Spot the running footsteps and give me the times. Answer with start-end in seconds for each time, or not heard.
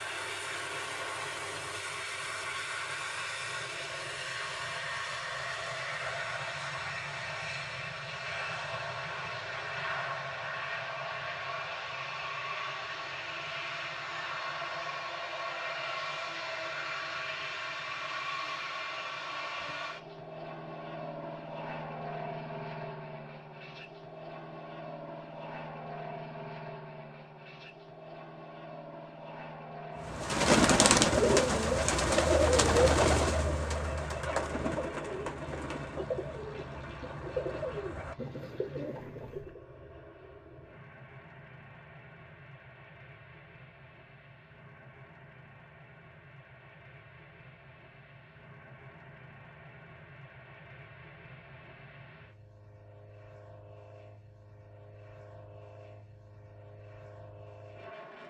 not heard.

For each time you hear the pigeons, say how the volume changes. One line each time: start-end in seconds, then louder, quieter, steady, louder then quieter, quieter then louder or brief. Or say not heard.
30.0-39.6 quieter.